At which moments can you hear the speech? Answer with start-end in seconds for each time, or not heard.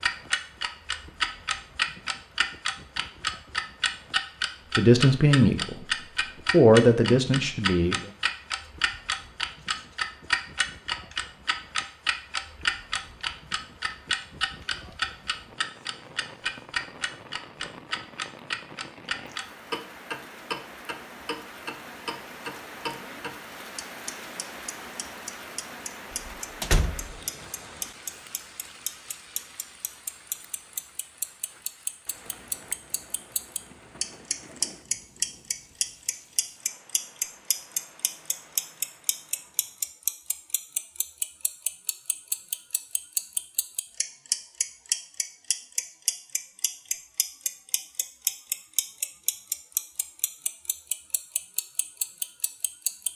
4.8-5.8, 6.5-8.1.